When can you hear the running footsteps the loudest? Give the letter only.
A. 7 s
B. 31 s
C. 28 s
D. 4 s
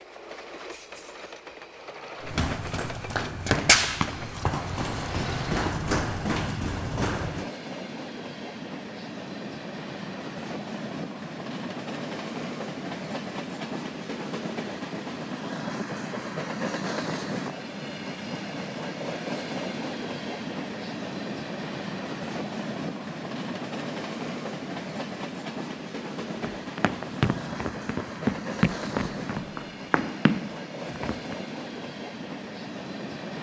D.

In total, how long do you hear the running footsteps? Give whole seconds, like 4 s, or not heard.
10 s.